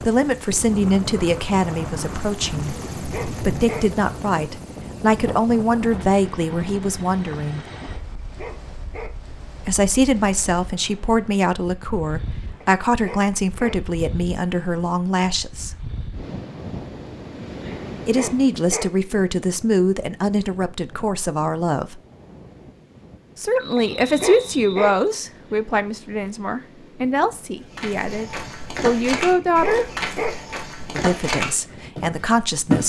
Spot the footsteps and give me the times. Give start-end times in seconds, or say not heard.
27.6-32.8.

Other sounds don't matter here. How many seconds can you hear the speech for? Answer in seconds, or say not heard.
26 s.